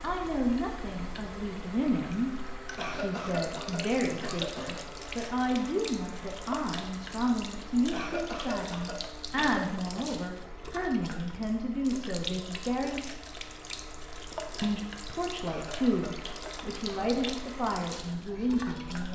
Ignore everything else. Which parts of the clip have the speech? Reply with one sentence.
The speech can be heard from 0.0 to 13.0 s and from 14.6 to 19.0 s.